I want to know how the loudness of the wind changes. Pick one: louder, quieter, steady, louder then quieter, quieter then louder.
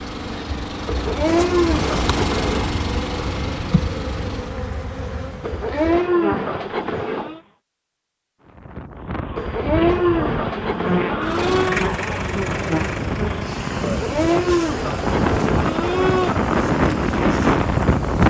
louder.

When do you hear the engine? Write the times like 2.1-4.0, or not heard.
0.0-4.7, 11.2-18.2.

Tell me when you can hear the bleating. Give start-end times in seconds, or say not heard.
0.8-2.7, 5.4-7.4, 9.3-11.8, 13.8-16.4.